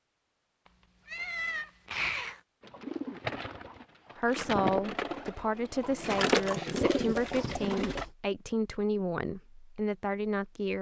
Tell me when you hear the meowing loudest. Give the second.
2 s.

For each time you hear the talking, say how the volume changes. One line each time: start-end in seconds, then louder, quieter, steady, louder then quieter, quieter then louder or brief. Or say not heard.
4.2-10.7 steady.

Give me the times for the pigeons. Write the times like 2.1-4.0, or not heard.
2.6-8.1.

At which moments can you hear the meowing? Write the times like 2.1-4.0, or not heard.
1.1-2.4, 7.0-8.1.